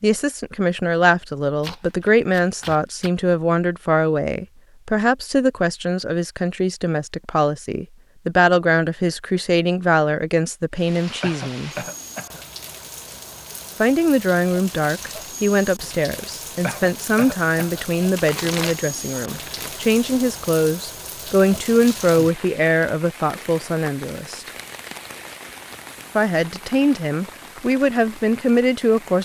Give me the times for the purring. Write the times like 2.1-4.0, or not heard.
not heard.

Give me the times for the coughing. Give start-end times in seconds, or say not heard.
11.2-12.4, 16.6-17.9.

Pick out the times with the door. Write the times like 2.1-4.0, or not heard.
not heard.